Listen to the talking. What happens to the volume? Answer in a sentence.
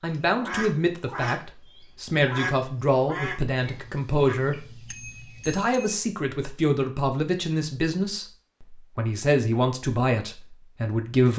The loudness of the talking stays about the same.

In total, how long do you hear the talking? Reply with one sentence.
The talking can be heard for 11 seconds in total.